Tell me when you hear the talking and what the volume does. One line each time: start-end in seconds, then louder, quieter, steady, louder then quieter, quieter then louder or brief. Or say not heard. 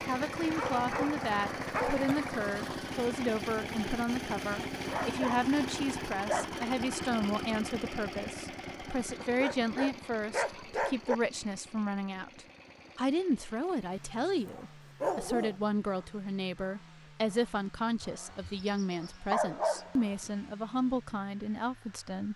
0.1-22.3 steady.